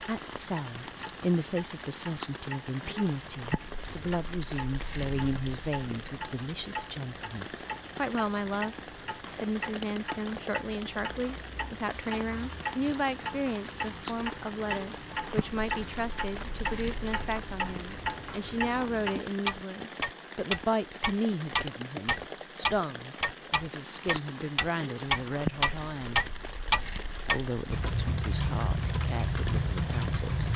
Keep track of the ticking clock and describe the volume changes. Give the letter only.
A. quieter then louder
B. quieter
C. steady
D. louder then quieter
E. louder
E.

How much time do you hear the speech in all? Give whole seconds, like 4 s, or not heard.
29 s.